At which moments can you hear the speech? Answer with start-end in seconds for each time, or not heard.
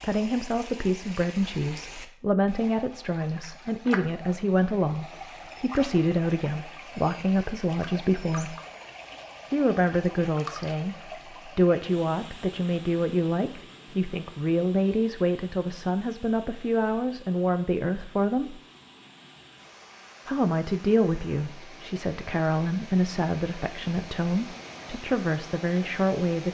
0.0-8.6, 9.5-18.6, 20.2-26.5.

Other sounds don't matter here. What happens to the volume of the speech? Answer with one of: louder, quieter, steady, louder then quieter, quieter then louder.
steady.